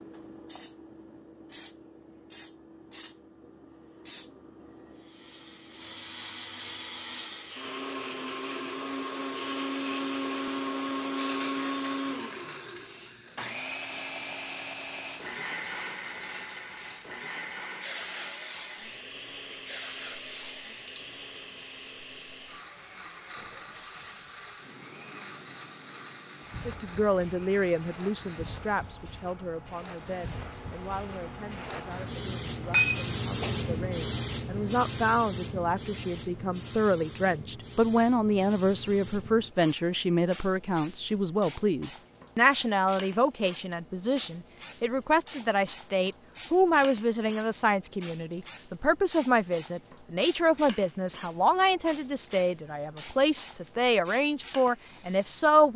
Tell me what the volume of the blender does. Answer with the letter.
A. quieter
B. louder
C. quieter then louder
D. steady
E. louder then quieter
A.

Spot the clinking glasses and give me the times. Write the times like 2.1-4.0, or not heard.
32.7-33.8.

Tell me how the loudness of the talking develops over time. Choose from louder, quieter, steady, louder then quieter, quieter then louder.
louder.